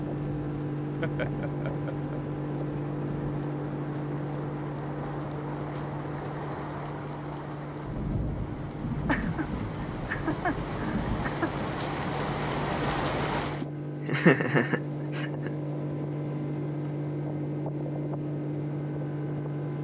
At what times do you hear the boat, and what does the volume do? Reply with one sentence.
The boat can be heard from 0.0 to 19.7 s, getting quieter then louder.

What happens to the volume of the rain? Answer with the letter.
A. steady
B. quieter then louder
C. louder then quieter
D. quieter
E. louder
E.